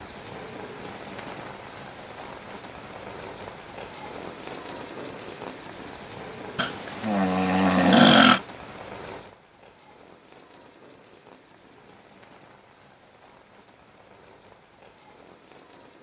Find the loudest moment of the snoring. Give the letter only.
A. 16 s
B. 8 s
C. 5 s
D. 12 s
B.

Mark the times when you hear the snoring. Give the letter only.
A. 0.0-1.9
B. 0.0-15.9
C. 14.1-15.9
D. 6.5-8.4
D.